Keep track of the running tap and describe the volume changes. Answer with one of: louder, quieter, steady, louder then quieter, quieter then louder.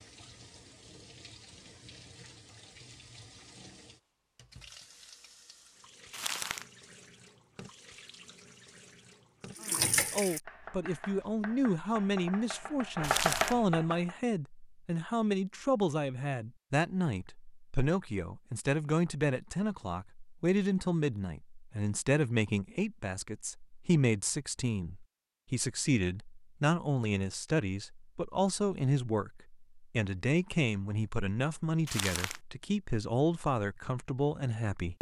louder.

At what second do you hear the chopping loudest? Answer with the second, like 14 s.
13 s.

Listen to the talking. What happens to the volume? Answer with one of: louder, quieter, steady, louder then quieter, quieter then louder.
steady.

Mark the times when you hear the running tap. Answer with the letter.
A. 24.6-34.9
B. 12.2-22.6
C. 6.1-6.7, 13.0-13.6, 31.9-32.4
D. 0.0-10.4
D.